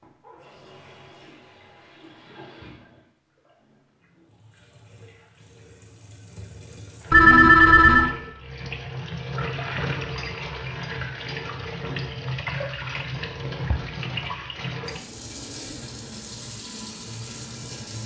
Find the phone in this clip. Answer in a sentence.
You can hear the phone from 7.1 to 8.1 s.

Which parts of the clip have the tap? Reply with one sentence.
The tap can be heard from 0.0 to 18.0 s.